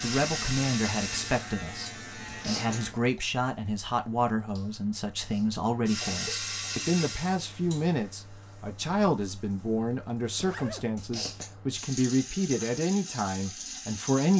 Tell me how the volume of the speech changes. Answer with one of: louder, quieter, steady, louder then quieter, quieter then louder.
steady.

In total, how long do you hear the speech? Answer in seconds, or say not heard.
14 s.